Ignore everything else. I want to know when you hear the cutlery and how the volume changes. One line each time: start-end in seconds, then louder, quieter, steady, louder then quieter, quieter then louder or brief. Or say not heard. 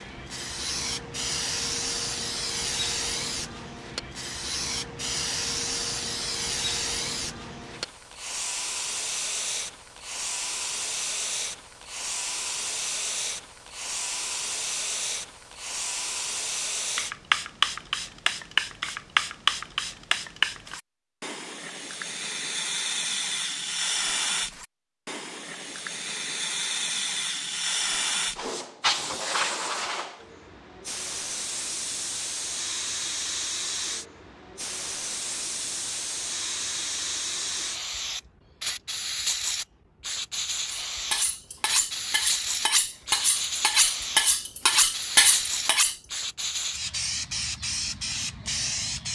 40.6-46.0 louder.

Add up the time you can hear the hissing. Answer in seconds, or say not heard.
49 s.